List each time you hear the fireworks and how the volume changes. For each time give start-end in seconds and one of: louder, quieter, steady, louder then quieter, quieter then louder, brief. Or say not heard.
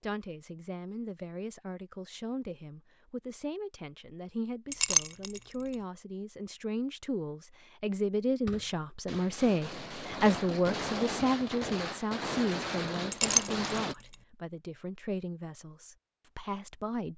8.4-13.9 louder.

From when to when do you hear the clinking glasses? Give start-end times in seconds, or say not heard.
4.7-5.4, 13.1-13.7.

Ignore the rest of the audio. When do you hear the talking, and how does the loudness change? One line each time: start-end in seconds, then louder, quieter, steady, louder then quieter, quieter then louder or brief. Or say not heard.
0.0-17.1 louder then quieter.